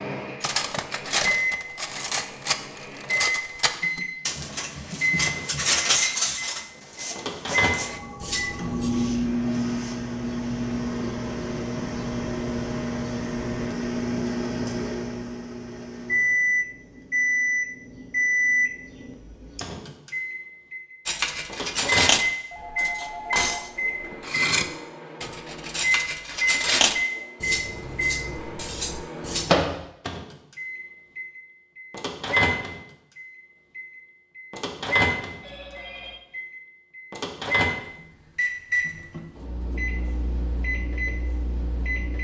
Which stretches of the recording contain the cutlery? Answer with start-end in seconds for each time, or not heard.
0.4-8.9, 21.1-29.6.